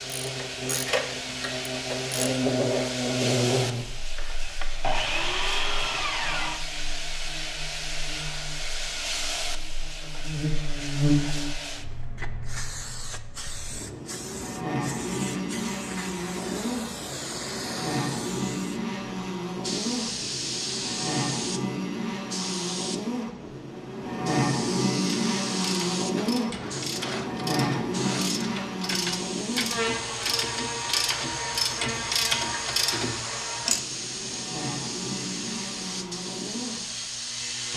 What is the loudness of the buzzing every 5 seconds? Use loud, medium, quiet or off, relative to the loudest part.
loud, quiet, loud, loud, loud, loud, medium, medium.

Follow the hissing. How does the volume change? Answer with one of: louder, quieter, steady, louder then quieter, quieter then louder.
steady.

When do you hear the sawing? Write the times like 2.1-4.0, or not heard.
4.2-6.7, 26.1-28.6.